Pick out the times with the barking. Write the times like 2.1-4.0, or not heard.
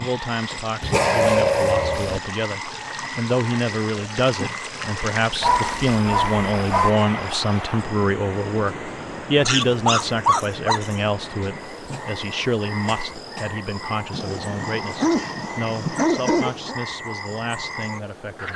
0.8-2.2, 5.4-6.9, 9.4-11.0, 14.1-16.8.